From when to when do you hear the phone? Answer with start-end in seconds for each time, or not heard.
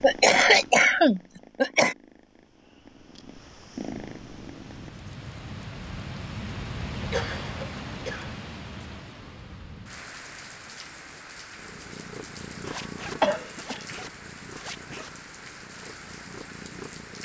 not heard.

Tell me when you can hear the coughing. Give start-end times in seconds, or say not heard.
0.0-1.9, 7.1-8.3, 12.7-13.8.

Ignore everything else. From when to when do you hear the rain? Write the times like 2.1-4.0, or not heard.
3.8-17.2.